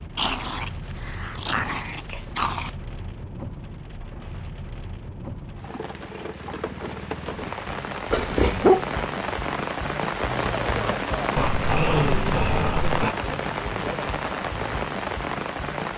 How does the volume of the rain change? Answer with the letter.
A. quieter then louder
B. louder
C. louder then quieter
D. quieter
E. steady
B.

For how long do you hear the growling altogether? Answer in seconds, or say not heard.
5 s.